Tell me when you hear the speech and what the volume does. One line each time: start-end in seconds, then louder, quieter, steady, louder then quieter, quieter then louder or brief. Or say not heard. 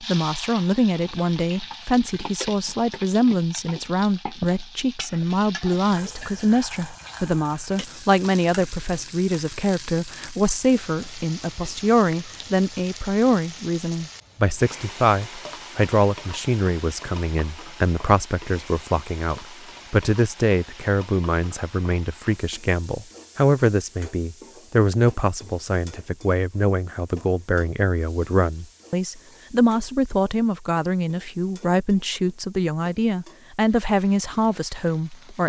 0.0-35.4 steady.